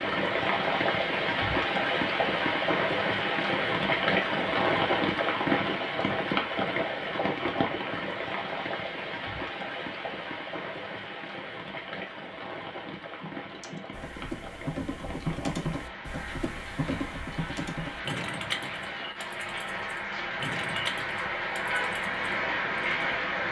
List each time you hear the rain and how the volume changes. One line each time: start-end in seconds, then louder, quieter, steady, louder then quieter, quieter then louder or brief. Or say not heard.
0.0-23.4 quieter then louder.